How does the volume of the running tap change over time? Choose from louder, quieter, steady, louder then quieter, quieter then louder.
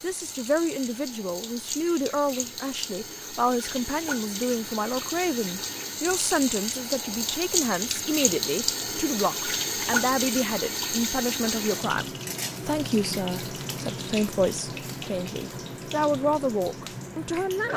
louder then quieter.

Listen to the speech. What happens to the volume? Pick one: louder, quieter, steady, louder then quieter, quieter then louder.
steady.